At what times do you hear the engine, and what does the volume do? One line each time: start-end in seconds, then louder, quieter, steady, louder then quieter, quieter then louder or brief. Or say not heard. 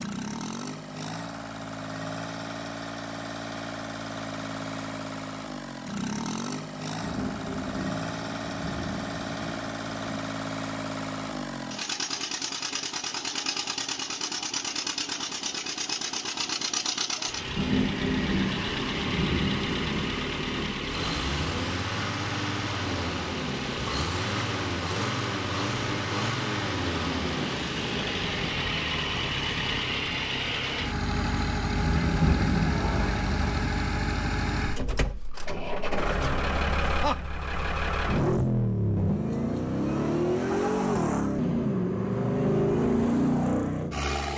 0.0-44.3 louder.